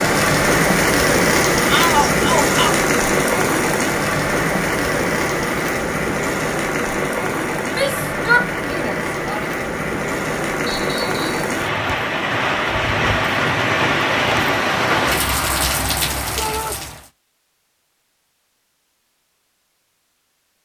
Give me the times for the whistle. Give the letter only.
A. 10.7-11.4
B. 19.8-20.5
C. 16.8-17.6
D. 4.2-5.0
A.